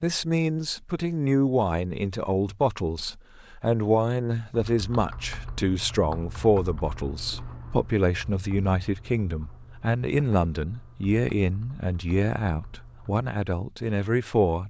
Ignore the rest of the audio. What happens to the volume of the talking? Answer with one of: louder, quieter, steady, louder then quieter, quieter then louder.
steady.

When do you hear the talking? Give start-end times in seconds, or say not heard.
0.0-14.6.